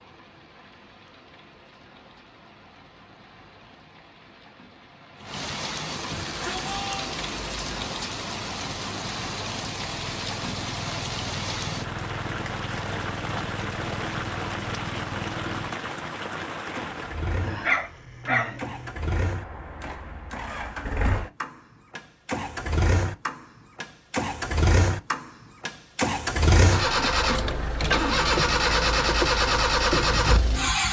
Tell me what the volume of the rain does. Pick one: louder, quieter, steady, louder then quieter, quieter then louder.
louder.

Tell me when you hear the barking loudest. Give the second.
18 s.